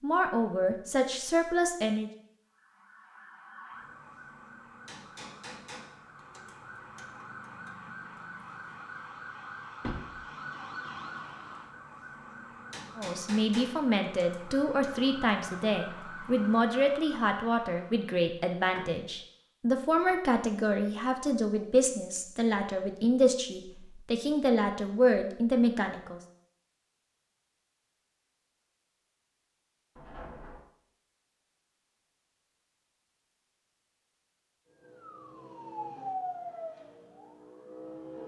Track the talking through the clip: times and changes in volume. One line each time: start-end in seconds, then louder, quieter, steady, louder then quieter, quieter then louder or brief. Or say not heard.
0.0-2.1 brief
12.9-26.2 steady.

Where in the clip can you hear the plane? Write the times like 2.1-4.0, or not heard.
not heard.